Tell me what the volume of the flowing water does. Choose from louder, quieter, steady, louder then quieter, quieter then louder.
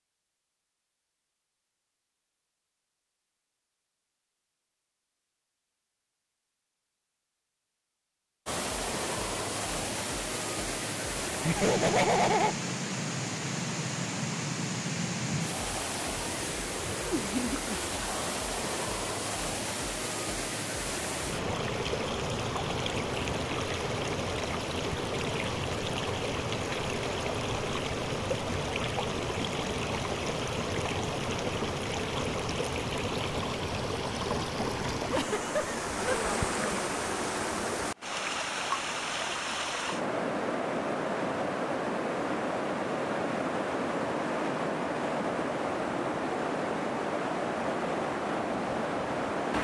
steady.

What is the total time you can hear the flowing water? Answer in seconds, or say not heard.
41 s.